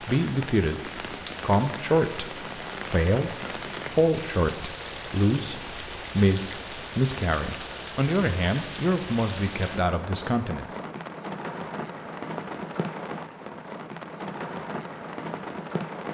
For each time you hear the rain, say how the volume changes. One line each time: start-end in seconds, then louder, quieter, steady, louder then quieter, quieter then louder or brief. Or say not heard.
0.0-16.0 steady.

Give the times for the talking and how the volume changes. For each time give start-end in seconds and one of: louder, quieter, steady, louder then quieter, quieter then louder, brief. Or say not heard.
0.0-10.7 steady.